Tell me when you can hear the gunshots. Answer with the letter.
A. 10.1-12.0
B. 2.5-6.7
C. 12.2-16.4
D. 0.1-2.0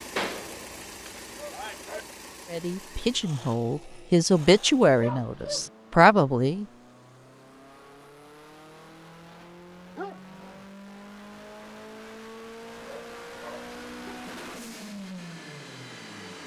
D.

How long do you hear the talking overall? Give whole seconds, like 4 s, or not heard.
4 s.